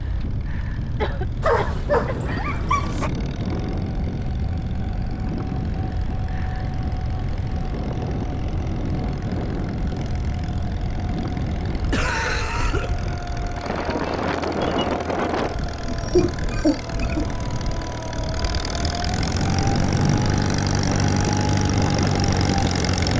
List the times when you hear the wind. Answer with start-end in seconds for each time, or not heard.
0.0-23.1.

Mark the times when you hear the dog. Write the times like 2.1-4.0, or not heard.
1.4-3.1.